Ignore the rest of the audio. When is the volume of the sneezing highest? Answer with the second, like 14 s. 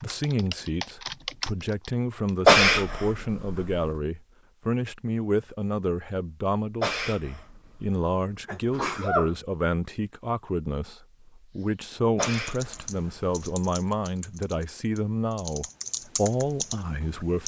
3 s.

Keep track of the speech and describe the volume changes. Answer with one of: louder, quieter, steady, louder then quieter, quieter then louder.
steady.